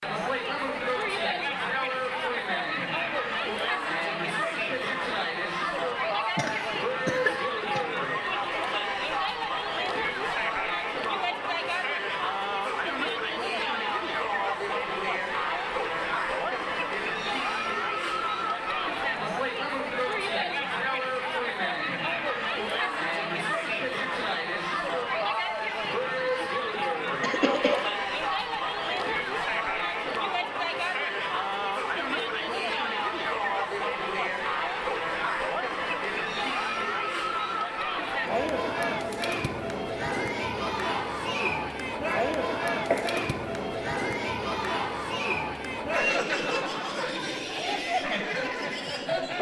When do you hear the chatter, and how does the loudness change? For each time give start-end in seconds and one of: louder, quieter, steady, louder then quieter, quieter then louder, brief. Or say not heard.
0.0-49.3 steady.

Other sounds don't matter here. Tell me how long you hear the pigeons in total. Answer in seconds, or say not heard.
not heard.